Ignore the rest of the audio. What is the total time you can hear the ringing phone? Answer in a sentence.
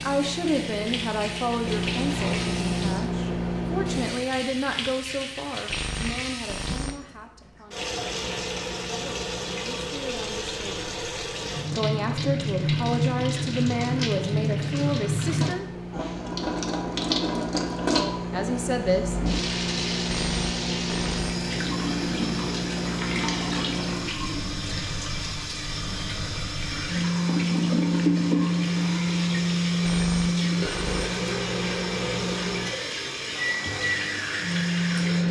The ringing phone can be heard for 4 seconds in total.